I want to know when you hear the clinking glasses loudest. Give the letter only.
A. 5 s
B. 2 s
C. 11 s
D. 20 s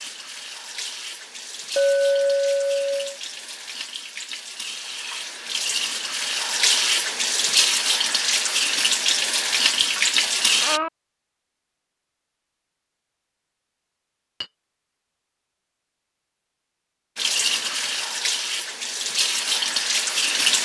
B.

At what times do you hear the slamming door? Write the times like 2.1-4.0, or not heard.
not heard.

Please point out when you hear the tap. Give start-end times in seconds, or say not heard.
0.0-10.8, 17.1-20.6.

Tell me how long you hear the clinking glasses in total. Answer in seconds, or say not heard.
2 s.